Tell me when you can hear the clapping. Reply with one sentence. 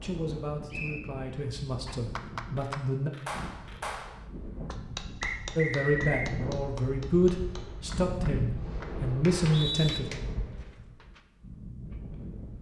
The clapping can be heard from 1.9 to 11.2 s.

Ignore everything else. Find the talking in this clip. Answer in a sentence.
The talking can be heard from 0.0 to 3.1 s and from 5.5 to 10.1 s.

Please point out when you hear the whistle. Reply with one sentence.
You can hear the whistle from 0.7 to 1.2 s, from 5.2 to 6.3 s and from 9.2 to 10.0 s.